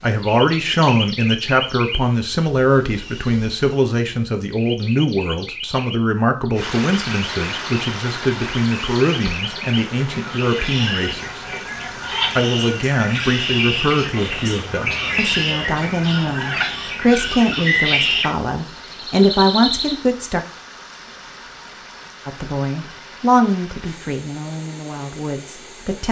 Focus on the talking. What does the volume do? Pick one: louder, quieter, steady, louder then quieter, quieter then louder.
steady.